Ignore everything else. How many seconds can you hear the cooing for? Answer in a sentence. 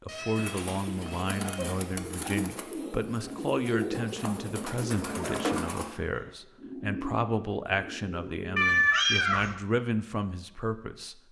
You can hear the cooing for 8 seconds altogether.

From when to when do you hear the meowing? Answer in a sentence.
You can hear the meowing from 0.1 to 1.9 s and from 8.6 to 9.6 s.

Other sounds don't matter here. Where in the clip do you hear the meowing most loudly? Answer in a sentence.
The volume of the meowing peaks at 9 seconds.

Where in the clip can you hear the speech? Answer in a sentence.
The speech can be heard from 0.0 to 11.2 s.